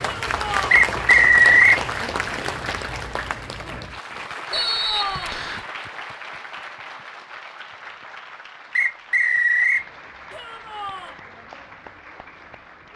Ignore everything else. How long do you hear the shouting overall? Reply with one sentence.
The shouting can be heard for 3 seconds in total.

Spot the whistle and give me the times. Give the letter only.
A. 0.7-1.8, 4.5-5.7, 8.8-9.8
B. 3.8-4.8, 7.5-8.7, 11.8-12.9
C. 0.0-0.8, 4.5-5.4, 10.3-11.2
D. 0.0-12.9
A.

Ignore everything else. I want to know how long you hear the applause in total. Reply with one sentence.
You can hear the applause for 13 seconds altogether.